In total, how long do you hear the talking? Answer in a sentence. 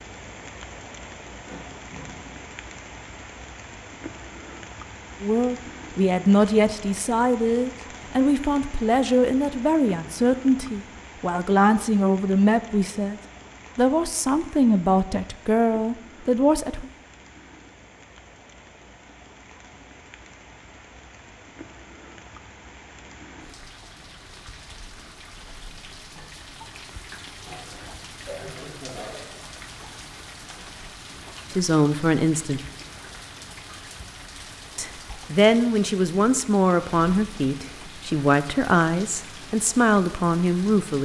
The talking can be heard for 19 seconds in total.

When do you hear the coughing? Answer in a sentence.
You can hear the coughing from 1.4 to 2.5 s and from 27.4 to 29.2 s.